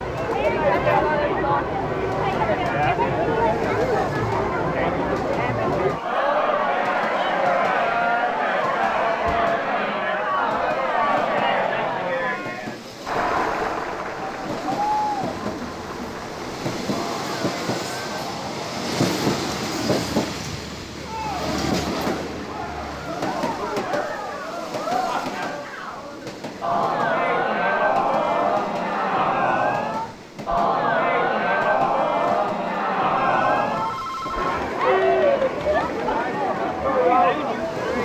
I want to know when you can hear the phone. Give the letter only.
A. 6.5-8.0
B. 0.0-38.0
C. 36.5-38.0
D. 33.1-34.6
D.